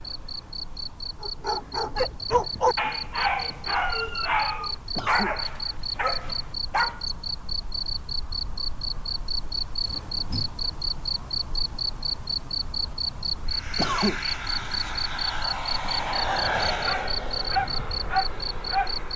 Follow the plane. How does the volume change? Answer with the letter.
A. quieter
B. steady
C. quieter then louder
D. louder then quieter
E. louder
D.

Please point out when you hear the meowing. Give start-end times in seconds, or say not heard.
9.8-10.6.